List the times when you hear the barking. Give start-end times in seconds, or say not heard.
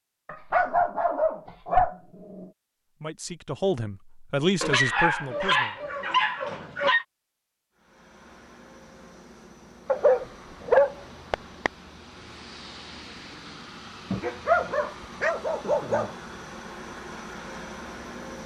0.2-2.5, 4.6-7.0, 9.8-11.7, 14.1-16.1.